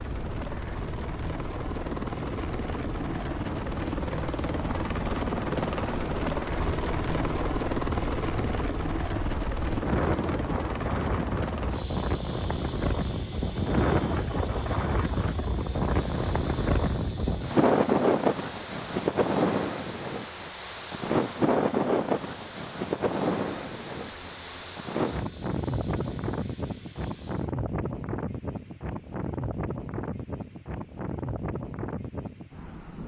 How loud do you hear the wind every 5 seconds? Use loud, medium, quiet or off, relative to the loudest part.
quiet, medium, loud, loud, loud, medium, medium.